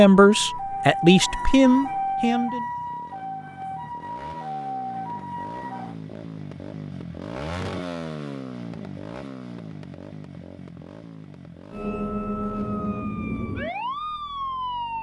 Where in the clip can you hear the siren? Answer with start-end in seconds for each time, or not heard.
0.1-6.0, 11.7-14.9.